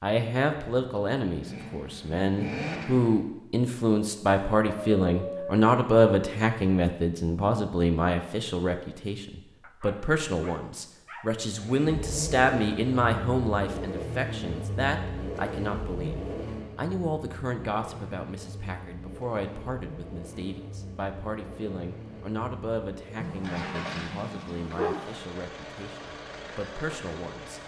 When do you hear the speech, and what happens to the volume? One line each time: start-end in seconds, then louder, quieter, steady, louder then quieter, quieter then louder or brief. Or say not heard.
0.0-27.6 quieter.